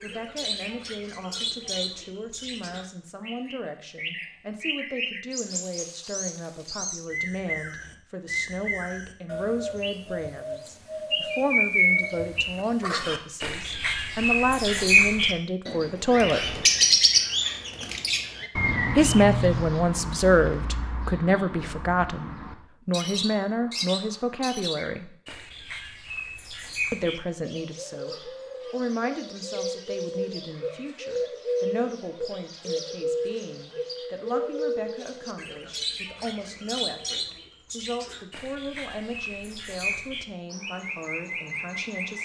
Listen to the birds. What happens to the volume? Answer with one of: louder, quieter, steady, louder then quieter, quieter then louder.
louder then quieter.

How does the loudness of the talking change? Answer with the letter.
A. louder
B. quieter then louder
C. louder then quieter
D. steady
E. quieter
C.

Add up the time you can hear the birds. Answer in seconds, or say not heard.
42 s.